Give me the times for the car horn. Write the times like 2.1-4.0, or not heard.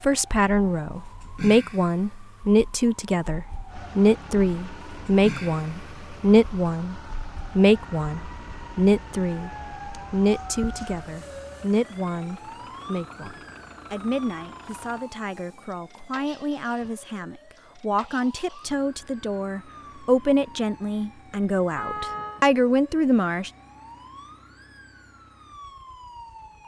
21.8-22.4.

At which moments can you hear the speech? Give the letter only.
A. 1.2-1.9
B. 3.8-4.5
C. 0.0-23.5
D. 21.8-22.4
C.